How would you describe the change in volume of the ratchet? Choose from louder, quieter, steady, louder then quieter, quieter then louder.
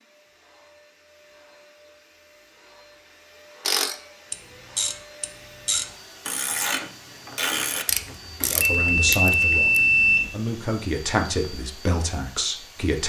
quieter.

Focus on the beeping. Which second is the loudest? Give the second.
10 s.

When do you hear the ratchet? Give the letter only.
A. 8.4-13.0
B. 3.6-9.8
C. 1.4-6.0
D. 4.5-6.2
B.